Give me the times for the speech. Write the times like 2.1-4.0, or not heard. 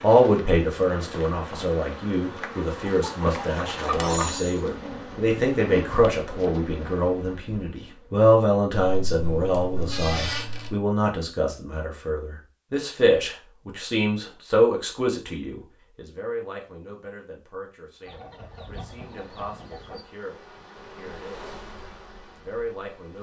0.0-21.5, 22.2-23.1.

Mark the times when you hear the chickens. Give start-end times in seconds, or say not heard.
2.9-4.5, 8.8-10.8, 18.1-20.0.